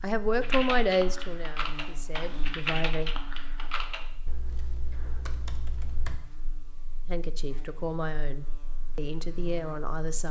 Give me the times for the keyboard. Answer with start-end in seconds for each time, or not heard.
0.4-6.2.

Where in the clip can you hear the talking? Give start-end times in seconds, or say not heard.
0.0-3.1, 7.0-10.2.